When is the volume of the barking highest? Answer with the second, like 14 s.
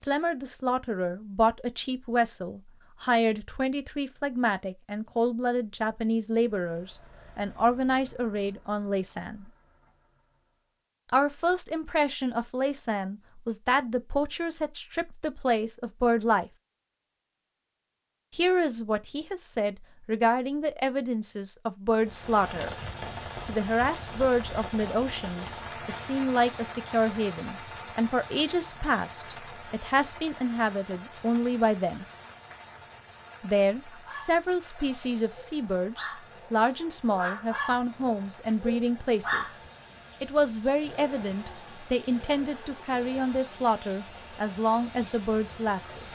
39 s.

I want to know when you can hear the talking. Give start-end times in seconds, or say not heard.
0.0-9.5, 11.1-16.5, 18.3-22.8, 23.4-32.0, 33.4-39.6, 40.2-46.0.